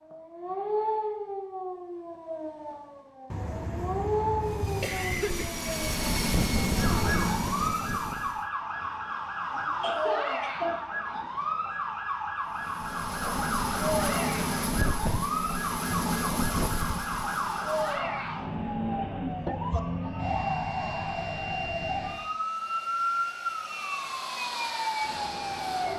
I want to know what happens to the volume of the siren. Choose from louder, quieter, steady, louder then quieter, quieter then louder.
steady.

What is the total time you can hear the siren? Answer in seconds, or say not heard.
26 s.